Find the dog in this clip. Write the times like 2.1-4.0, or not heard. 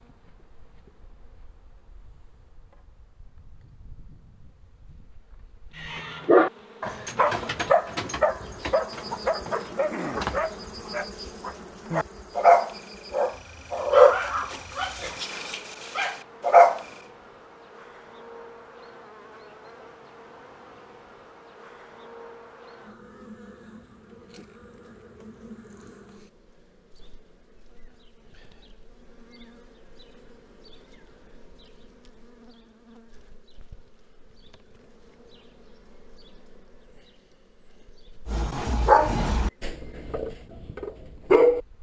5.8-16.9, 38.2-41.7.